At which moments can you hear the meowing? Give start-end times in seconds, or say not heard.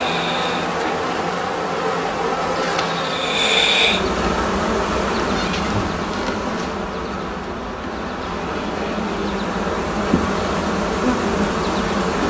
5.2-6.8.